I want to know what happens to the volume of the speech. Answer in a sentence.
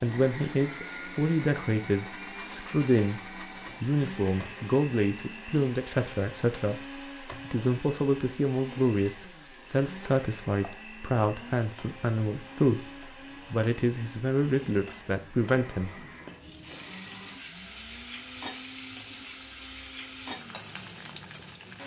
The loudness of the speech stays about the same.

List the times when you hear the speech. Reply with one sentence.
The speech can be heard from 0.0 to 3.2 s and from 3.8 to 15.9 s.